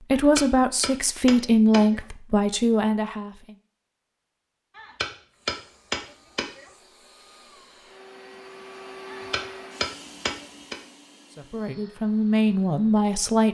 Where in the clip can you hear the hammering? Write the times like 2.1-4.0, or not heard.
0.1-2.0, 4.8-6.7, 9.1-10.8.